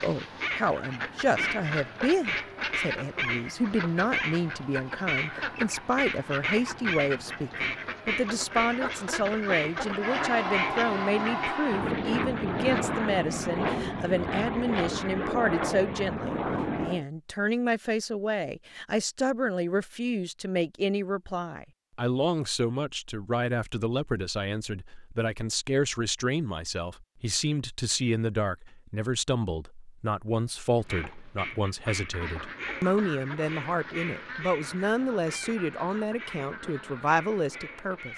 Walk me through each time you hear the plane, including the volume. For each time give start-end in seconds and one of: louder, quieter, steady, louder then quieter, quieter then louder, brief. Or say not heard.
0.1-17.1 louder.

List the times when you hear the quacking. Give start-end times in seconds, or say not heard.
0.0-11.6, 30.8-38.1.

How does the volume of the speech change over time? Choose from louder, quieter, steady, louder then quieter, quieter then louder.
steady.